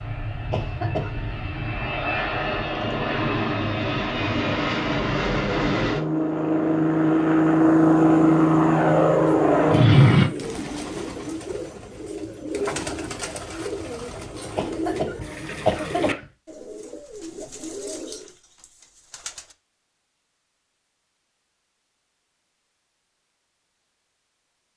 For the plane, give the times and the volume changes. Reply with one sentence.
You can hear the plane from 0.0 to 10.3 s, getting louder.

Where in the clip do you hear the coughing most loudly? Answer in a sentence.
The loudest moment of the coughing is at 16 seconds.